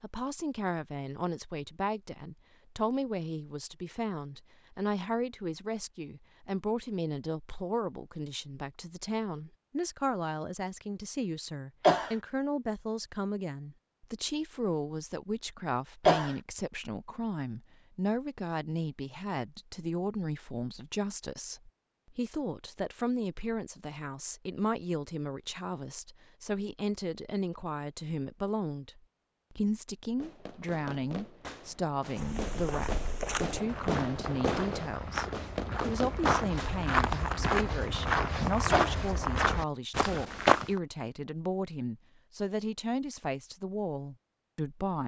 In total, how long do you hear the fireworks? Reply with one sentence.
The fireworks can be heard for 7 seconds in total.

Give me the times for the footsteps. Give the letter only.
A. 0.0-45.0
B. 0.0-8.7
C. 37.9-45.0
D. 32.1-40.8
D.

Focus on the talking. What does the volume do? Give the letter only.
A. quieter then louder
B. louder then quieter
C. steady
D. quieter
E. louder
C.